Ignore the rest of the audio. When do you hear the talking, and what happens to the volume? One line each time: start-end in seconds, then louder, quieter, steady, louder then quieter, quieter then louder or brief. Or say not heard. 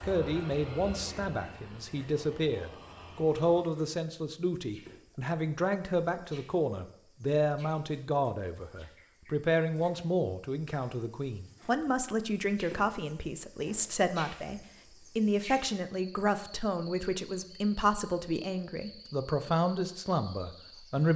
0.0-21.1 steady.